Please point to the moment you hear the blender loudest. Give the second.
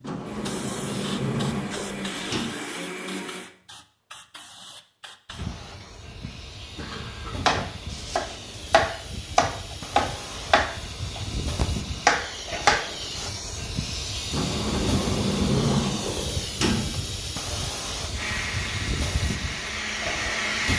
20 s.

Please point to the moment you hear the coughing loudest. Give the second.
7 s.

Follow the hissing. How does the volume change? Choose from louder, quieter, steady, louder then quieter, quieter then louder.
louder.